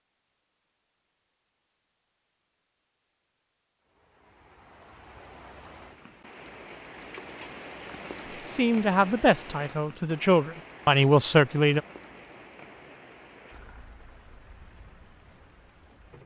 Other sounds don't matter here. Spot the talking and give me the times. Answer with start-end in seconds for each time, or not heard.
8.4-11.8.